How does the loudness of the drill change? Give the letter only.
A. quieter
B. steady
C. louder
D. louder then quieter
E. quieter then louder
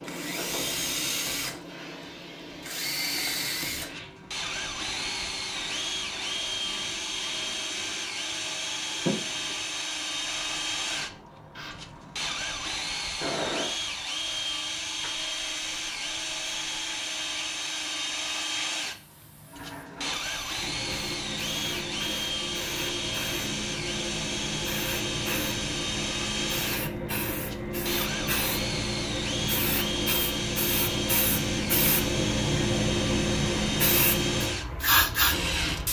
B.